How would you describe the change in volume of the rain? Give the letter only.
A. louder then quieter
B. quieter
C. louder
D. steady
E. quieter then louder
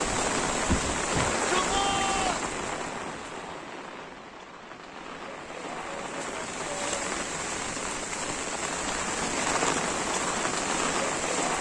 E.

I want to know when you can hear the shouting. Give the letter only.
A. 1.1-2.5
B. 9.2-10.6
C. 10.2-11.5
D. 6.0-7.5
A.